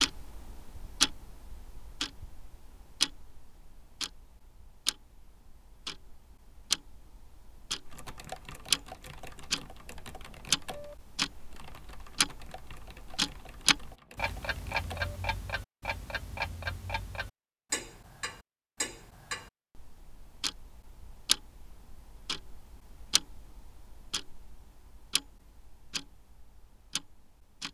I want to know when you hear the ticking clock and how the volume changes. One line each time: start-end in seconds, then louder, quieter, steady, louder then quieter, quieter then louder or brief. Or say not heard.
0.0-27.7 quieter.